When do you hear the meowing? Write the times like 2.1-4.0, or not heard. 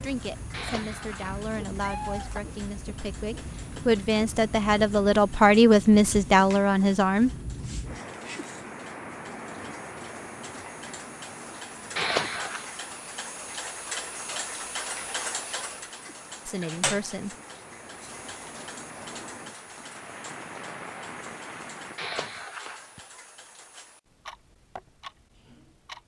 0.5-2.4, 11.9-12.7, 21.9-23.1.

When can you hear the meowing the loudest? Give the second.
12 s.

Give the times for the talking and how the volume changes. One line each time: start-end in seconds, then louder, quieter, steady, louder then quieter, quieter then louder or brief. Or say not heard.
0.0-7.3 louder
16.4-17.3 brief.